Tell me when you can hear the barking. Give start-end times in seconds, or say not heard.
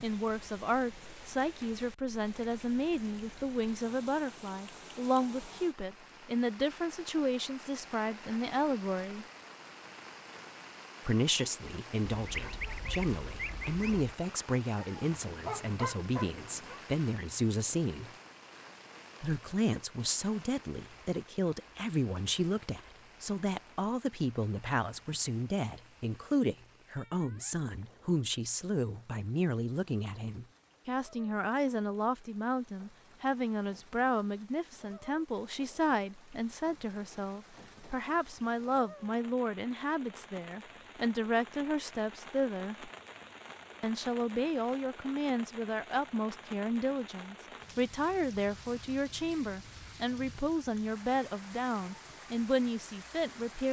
14.8-16.8.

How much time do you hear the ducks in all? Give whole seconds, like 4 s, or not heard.
2 s.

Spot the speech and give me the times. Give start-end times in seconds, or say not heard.
0.0-9.2, 11.1-18.1, 19.2-42.9, 43.8-53.6.